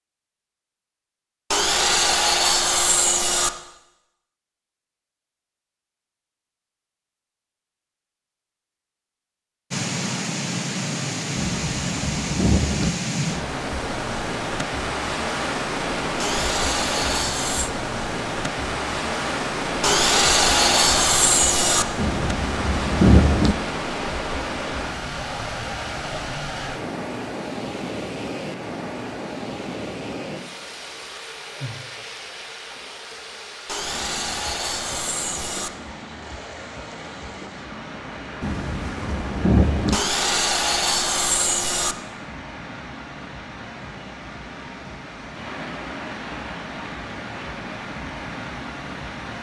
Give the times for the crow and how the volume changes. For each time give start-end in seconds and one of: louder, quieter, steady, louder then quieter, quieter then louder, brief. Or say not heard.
not heard.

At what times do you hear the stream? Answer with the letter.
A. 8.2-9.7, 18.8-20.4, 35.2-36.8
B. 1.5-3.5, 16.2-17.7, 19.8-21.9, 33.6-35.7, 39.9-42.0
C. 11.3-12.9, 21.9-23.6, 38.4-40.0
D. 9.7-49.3
D.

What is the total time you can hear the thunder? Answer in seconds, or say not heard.
5 s.